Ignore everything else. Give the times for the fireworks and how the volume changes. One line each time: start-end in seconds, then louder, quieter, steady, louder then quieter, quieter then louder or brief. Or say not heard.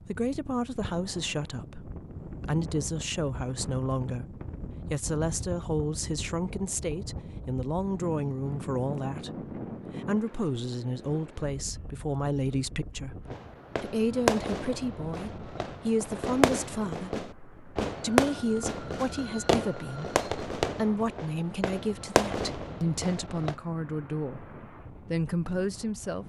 13.2-23.6 steady.